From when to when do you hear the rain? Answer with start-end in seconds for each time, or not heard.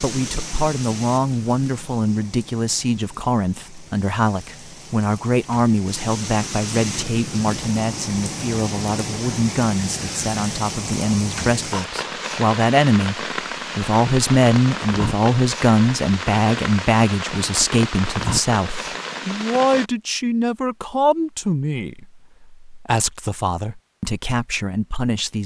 0.0-19.9.